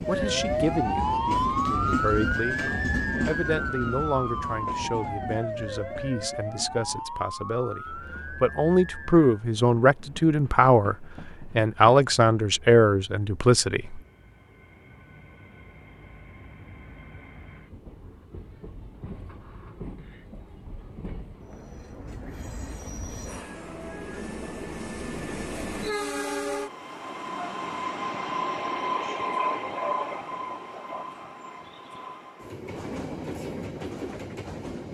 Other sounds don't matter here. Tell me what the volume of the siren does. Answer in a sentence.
The loudness of the siren goes down.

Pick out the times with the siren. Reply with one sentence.
You can hear the siren from 0.0 to 9.2 s.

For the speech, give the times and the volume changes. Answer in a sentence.
You can hear the speech from 0.1 to 14.0 s, getting louder.